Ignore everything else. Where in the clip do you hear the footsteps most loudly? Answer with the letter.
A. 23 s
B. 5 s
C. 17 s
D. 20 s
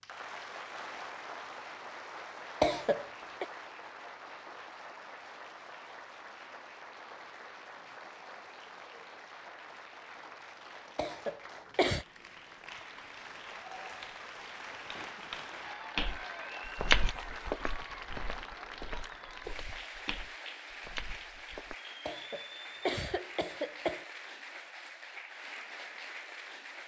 C.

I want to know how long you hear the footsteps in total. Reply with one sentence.
The footsteps can be heard for 6 seconds in total.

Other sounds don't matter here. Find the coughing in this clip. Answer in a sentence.
You can hear the coughing from 2.6 to 3.5 s, from 10.9 to 12.1 s and from 22.1 to 24.1 s.